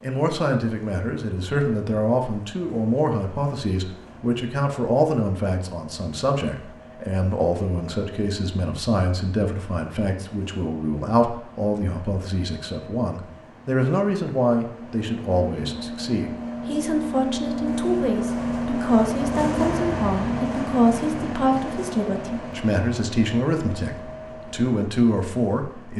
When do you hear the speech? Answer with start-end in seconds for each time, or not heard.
0.0-25.9.